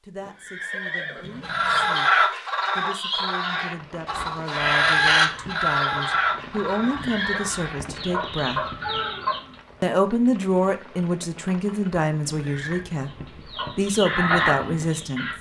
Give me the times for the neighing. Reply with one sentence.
You can hear the neighing from 0.2 to 1.9 s, from 6.8 to 7.5 s and from 12.2 to 12.8 s.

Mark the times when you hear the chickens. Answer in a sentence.
You can hear the chickens from 1.4 to 9.6 s and from 13.0 to 15.3 s.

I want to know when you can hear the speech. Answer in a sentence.
You can hear the speech from 0.0 to 8.6 s, from 9.8 to 13.1 s and from 13.8 to 15.3 s.